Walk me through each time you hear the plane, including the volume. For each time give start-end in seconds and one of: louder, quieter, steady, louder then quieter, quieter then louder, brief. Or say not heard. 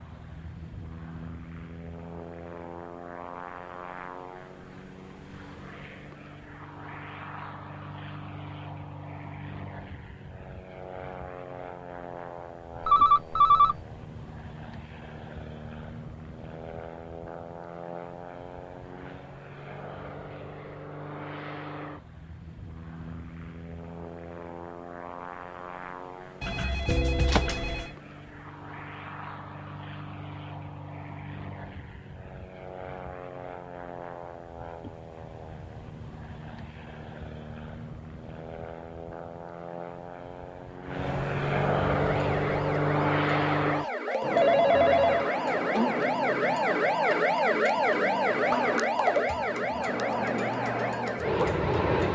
0.0-52.1 louder.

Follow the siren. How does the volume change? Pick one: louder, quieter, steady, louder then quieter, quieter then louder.
louder then quieter.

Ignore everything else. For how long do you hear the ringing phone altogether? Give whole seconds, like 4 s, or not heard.
3 s.